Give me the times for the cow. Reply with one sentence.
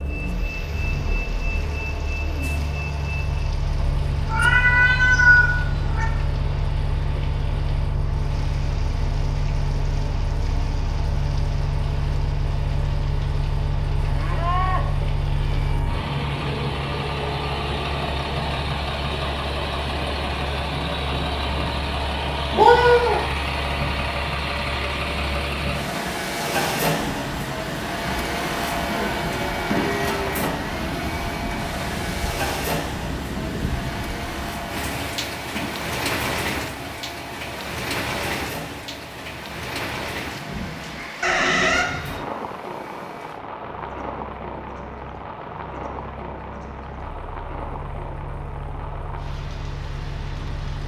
You can hear the cow from 14.0 to 16.1 s and from 28.9 to 30.4 s.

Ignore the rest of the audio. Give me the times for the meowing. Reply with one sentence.
The meowing can be heard from 4.2 to 6.0 s, from 22.5 to 23.2 s and from 41.2 to 41.9 s.